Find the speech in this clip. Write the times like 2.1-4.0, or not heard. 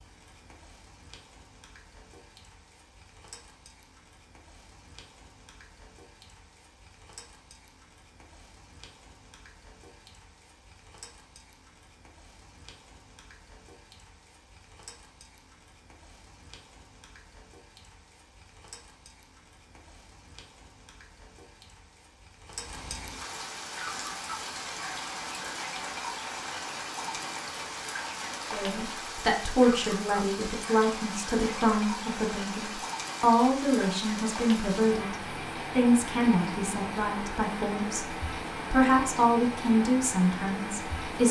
28.5-41.2.